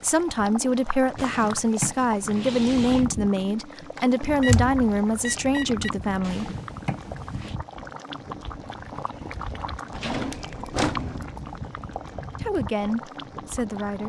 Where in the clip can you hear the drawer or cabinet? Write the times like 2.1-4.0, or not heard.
1.1-3.0, 6.2-7.5, 9.9-11.2.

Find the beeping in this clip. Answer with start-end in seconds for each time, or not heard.
4.2-5.8.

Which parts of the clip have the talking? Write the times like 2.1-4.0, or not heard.
0.0-6.5, 12.3-14.0.